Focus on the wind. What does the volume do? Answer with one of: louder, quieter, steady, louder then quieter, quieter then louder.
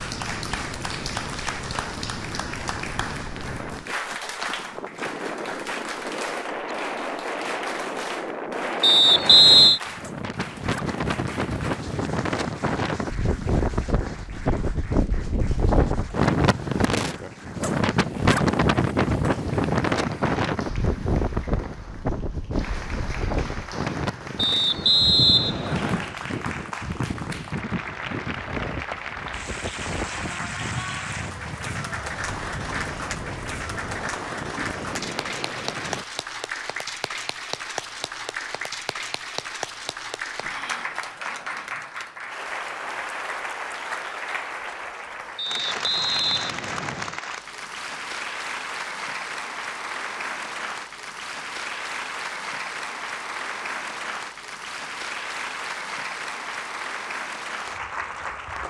louder then quieter.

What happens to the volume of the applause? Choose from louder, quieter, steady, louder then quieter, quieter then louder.
quieter then louder.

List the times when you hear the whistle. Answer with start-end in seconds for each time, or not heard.
8.8-9.8, 24.4-26.1, 45.4-47.2.